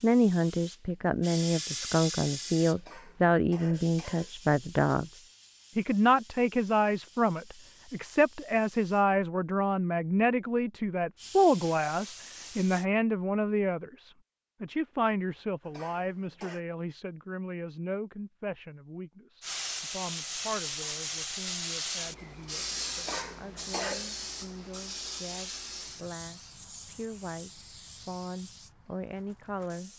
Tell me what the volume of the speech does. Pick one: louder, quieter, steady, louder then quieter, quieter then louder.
quieter.